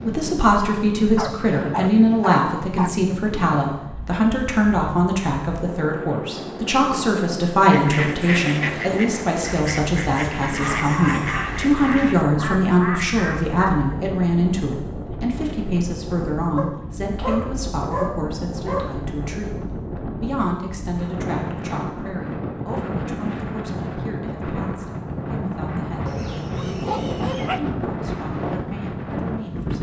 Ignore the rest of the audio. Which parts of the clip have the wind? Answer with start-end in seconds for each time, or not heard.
0.0-29.7.